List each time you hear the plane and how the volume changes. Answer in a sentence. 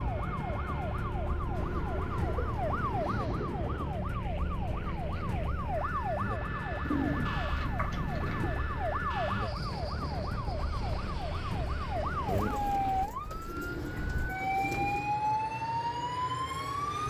You can hear the plane from 0.0 to 17.0 s, at a steady volume.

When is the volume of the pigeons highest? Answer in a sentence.
The volume of the pigeons peaks at 7 seconds.